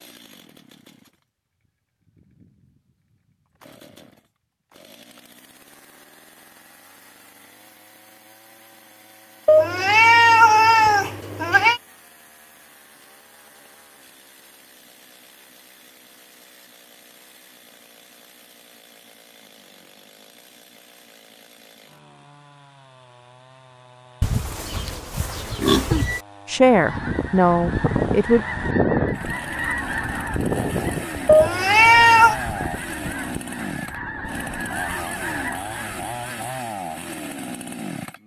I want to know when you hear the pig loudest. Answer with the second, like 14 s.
26 s.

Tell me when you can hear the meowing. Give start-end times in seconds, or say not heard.
9.4-11.8, 31.2-32.4.